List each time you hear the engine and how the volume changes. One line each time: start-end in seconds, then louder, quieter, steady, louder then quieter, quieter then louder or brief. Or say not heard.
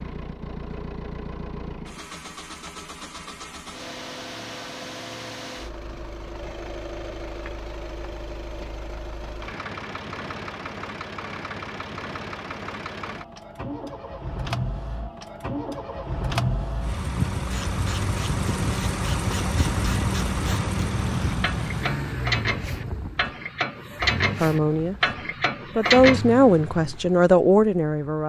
0.0-28.2 louder then quieter.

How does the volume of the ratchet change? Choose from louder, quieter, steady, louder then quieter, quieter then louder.
louder.